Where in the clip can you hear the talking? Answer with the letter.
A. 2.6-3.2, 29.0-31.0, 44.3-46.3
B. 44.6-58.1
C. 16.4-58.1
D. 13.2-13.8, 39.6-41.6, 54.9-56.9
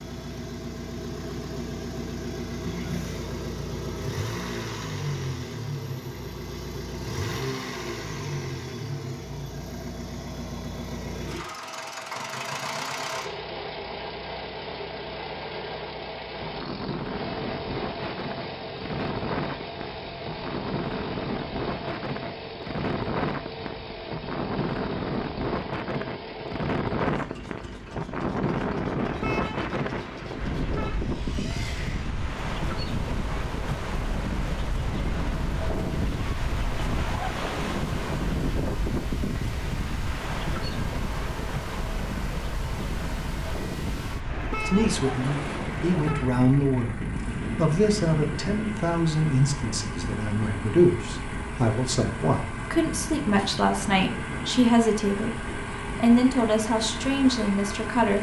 B.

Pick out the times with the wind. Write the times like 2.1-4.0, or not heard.
16.4-58.1.